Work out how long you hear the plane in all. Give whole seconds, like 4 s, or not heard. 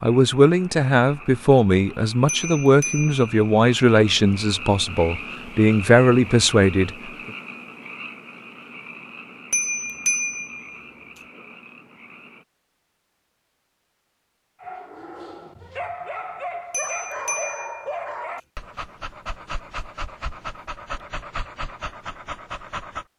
not heard.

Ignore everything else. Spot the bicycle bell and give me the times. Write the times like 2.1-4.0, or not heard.
2.2-3.3, 9.5-10.9, 16.7-18.1.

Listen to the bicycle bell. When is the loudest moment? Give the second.
10 s.